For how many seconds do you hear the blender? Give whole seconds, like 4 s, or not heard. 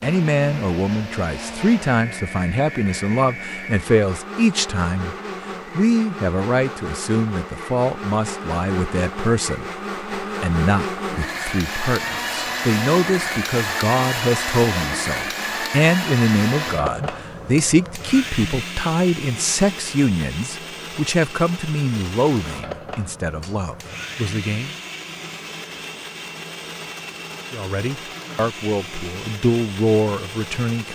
31 s.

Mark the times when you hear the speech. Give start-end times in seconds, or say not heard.
0.0-5.2, 5.8-24.8, 27.5-30.9.